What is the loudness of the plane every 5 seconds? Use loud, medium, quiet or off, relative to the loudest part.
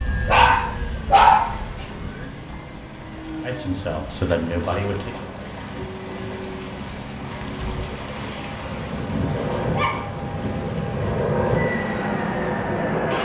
medium, medium, loud.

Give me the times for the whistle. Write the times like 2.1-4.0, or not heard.
not heard.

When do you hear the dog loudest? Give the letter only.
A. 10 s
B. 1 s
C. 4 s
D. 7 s
B.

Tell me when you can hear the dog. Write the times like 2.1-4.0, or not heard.
0.2-1.9, 8.9-10.6.